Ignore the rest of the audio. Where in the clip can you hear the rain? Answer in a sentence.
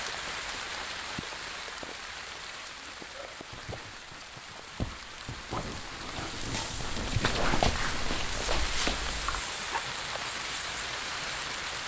You can hear the rain from 0.0 to 11.8 s.